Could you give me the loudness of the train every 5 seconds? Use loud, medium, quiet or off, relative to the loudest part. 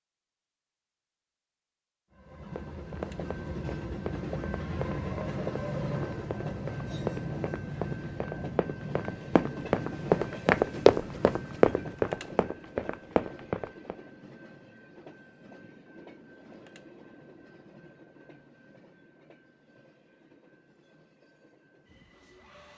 loud, loud, medium, quiet, quiet.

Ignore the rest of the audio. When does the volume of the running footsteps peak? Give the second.
11 s.